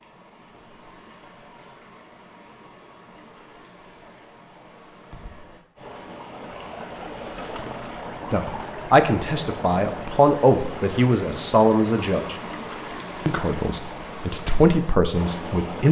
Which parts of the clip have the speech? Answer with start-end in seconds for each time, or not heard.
8.3-12.3, 13.2-15.8.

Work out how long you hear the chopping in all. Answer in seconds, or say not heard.
not heard.